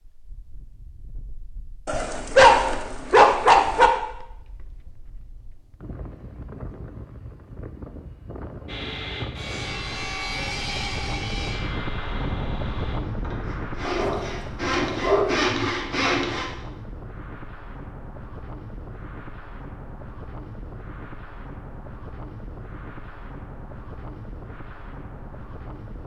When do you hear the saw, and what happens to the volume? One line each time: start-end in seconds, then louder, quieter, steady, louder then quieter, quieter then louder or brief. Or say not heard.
8.7-16.4 quieter then louder.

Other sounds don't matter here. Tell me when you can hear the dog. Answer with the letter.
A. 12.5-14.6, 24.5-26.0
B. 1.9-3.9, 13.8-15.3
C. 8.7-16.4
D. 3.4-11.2
B.